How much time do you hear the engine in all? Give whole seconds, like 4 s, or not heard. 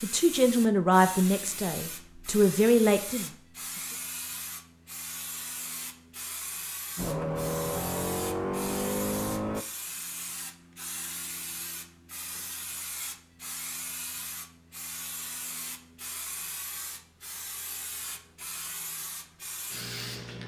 3 s.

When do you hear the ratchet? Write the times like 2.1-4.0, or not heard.
not heard.